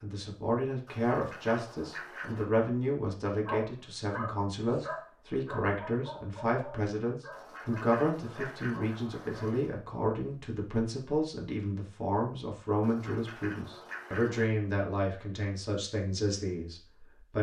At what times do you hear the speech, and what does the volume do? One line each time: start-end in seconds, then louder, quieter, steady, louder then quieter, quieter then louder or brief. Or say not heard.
0.0-17.3 steady.